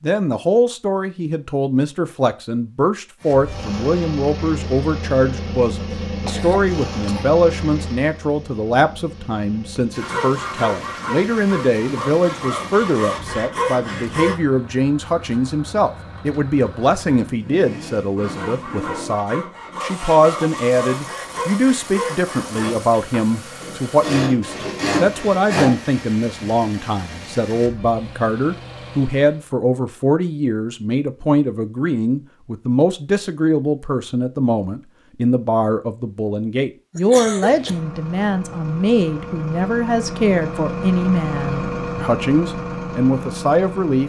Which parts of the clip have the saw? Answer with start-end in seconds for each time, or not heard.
10.0-14.3, 18.1-26.1.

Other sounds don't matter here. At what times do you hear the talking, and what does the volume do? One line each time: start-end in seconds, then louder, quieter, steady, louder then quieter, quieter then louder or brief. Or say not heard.
0.0-44.0 steady.